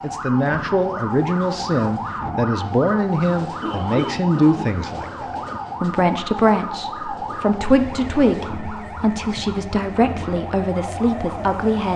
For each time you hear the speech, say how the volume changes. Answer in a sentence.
You can hear the speech from 0.0 to 11.9 s, at a steady volume.